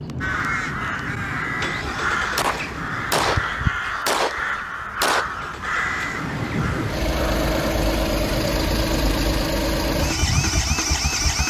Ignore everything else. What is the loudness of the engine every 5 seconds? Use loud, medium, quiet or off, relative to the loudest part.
medium, loud, loud.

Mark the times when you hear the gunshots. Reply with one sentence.
You can hear the gunshots from 2.4 to 5.2 s.